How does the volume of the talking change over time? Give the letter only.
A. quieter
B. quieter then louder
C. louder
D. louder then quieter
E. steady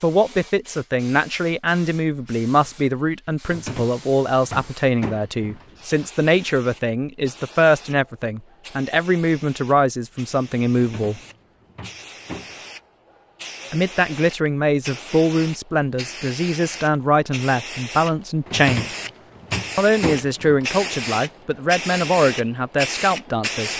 E.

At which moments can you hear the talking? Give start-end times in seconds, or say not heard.
0.0-11.2, 13.7-18.9, 19.8-23.7.